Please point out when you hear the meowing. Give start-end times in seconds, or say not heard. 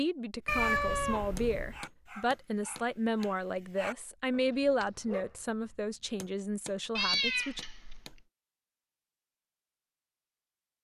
0.5-1.8, 7.0-8.2.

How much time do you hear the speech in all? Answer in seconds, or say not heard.
8 s.